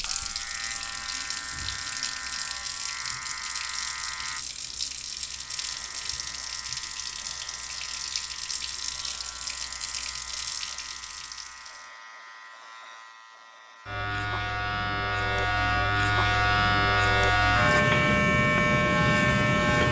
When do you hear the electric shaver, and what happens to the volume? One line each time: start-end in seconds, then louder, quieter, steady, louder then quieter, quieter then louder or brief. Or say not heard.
0.0-19.8 quieter then louder.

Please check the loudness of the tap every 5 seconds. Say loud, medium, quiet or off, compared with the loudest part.
loud, loud, loud, off.